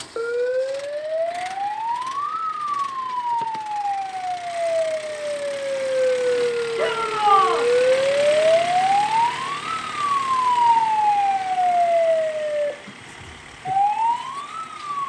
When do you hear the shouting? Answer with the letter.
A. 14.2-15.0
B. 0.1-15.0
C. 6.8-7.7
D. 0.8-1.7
C.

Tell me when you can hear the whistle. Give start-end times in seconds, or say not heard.
not heard.